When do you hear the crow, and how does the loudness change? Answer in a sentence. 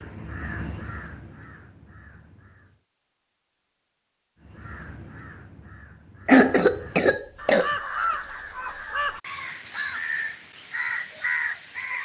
The crow can be heard briefly from 0.0 to 2.8 s; and from 4.4 to 12.0 s, getting louder.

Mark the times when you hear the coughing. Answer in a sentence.
The coughing can be heard from 6.2 to 7.7 s.